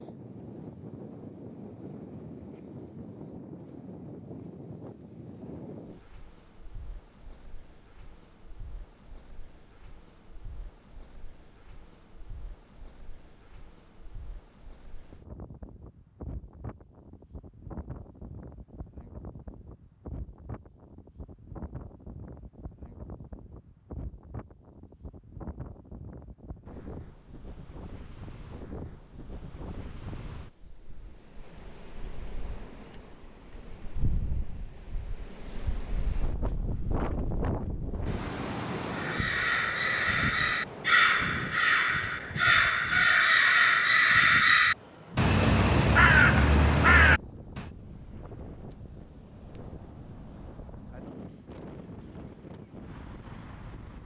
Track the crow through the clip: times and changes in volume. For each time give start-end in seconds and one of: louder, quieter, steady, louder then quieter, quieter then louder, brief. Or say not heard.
38.9-47.6 louder.